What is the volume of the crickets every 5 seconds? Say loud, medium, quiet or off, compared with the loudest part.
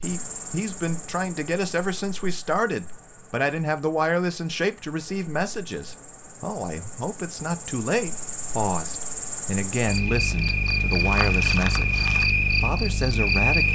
quiet, medium, loud.